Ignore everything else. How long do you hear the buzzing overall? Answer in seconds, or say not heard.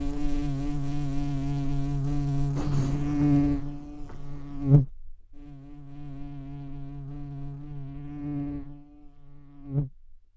10 s.